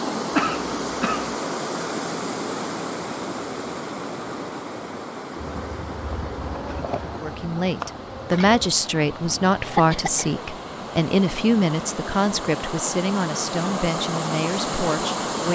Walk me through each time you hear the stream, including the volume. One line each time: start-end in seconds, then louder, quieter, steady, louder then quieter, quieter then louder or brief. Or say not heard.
0.0-15.5 quieter then louder.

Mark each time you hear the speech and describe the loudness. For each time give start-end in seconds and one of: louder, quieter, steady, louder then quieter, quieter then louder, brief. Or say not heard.
7.2-15.5 quieter.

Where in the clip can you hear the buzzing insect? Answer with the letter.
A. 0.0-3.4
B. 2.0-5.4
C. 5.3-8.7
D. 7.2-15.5
C.